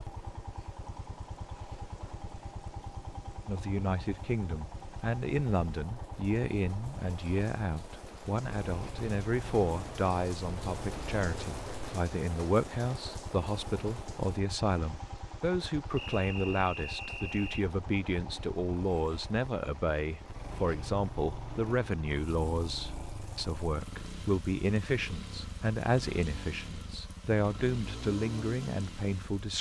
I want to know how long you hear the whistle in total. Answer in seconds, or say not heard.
2 s.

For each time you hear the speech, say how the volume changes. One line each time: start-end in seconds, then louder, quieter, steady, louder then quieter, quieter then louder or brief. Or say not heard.
3.5-29.5 steady.